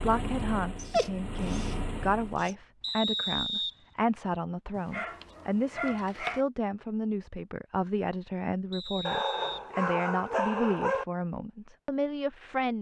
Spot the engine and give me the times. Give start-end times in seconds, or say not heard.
0.0-2.4.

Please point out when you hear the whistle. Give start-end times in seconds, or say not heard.
2.8-4.2, 8.7-9.7.